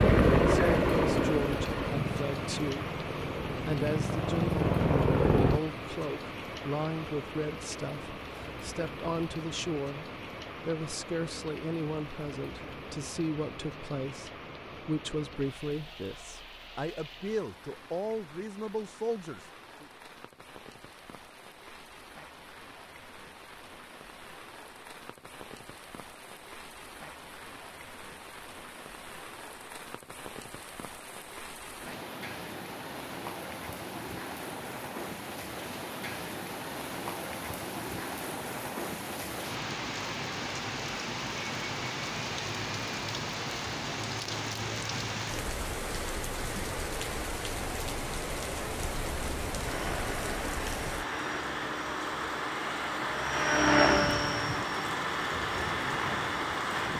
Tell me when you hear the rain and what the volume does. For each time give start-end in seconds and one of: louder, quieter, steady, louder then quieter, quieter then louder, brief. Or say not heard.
0.0-56.9 quieter then louder.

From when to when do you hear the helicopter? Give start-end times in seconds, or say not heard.
0.0-5.6, 49.6-56.9.